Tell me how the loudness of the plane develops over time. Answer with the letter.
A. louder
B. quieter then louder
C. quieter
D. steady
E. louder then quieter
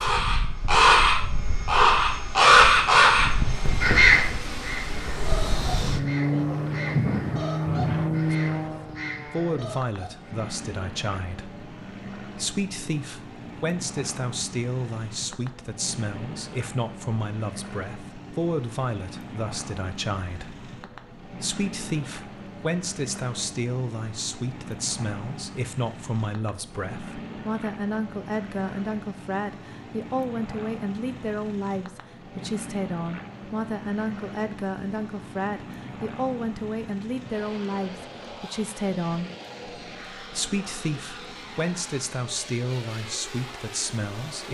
C.